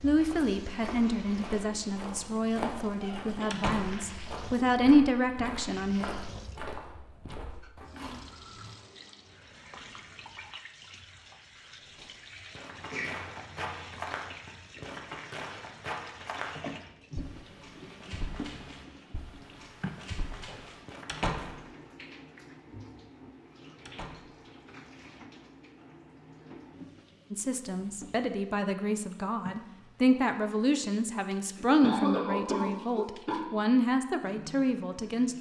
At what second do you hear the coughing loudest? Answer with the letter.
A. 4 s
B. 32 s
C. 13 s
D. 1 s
B.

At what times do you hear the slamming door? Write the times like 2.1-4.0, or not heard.
3.5-4.0, 21.1-21.6, 23.9-24.4.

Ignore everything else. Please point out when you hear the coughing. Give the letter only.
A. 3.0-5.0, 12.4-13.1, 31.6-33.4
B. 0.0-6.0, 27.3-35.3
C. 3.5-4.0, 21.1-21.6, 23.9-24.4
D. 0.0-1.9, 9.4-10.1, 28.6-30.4
A.